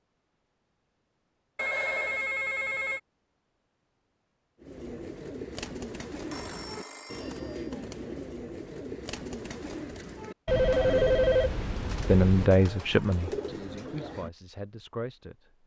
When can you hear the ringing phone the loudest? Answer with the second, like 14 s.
11 s.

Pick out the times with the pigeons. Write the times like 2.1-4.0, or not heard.
4.6-14.3.